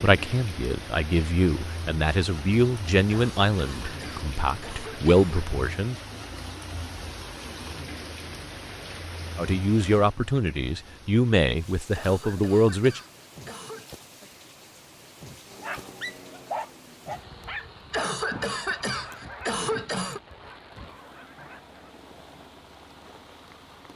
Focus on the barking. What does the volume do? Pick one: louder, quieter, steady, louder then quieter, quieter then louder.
quieter.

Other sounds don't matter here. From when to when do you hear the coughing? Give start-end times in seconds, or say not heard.
3.1-5.5, 11.9-13.9, 17.9-20.2.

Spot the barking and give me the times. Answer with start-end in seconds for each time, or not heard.
15.5-21.9.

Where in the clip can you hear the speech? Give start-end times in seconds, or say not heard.
0.0-6.0, 9.3-13.0.